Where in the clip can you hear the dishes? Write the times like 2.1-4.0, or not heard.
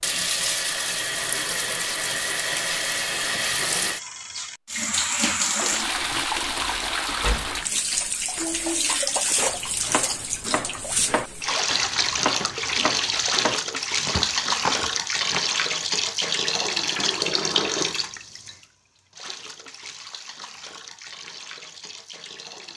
not heard.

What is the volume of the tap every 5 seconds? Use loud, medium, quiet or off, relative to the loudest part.
loud, loud, loud, loud, quiet.